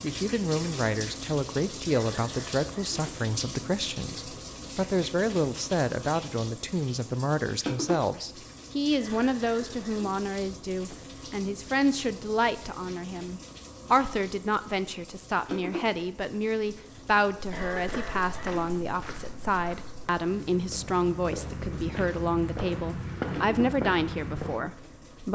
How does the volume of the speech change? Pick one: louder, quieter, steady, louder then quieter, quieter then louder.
steady.